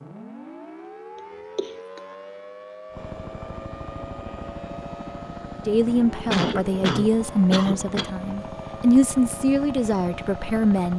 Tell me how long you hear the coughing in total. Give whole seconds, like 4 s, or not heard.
3 s.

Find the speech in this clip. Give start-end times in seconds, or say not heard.
5.7-10.9.